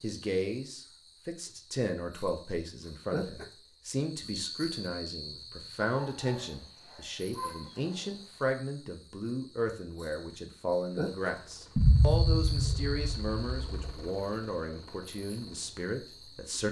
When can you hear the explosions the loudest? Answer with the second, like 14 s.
12 s.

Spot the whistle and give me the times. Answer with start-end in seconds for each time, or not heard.
not heard.